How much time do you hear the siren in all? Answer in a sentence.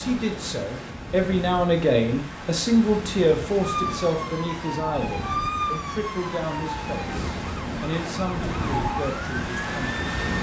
You can hear the siren for 7 seconds altogether.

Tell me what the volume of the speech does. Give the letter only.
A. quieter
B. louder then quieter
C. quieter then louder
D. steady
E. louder
A.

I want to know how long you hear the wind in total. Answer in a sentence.
The wind can be heard for 10 seconds in total.